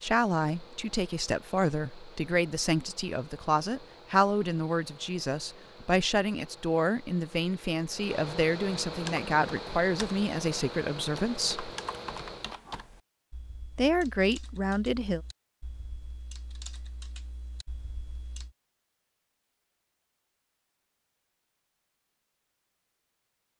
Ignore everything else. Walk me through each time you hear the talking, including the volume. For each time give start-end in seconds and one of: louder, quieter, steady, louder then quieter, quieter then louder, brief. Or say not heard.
0.0-11.7 steady
13.8-15.2 brief.